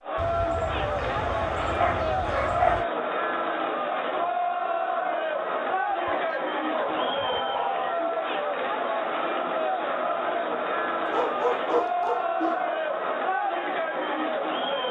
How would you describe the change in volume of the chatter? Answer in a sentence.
The loudness of the chatter stays about the same.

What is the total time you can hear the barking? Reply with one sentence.
The barking can be heard for 6 seconds in total.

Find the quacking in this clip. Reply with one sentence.
You can't hear the quacking here.